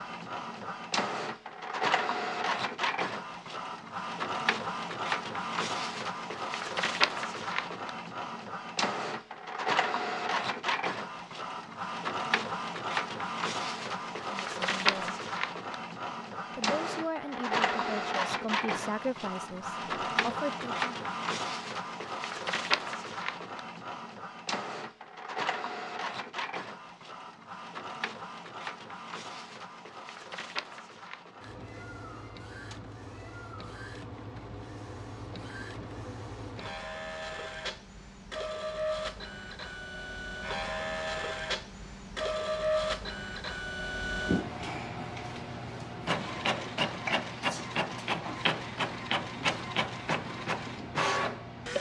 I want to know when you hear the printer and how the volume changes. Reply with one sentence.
You can hear the printer from 0.0 to 51.7 s, getting quieter then louder.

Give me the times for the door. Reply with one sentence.
You can't hear the door here.